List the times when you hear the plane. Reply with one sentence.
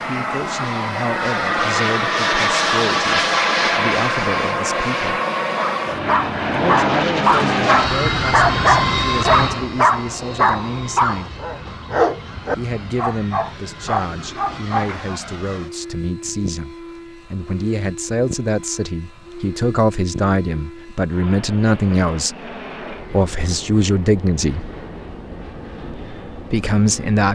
The plane can be heard from 0.0 to 27.2 s.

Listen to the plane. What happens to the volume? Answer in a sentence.
The loudness of the plane goes down.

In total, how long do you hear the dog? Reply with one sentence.
You can hear the dog for 10 seconds altogether.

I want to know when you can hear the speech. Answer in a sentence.
The speech can be heard from 0.1 to 5.2 s, from 6.5 to 11.3 s, from 12.6 to 24.7 s and from 25.9 to 27.2 s.